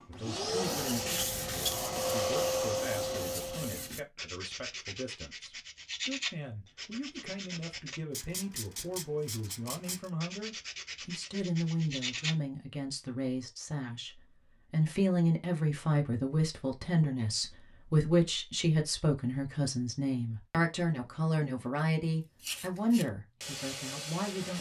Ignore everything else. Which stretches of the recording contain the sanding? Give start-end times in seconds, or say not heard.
0.8-12.3, 22.4-24.5.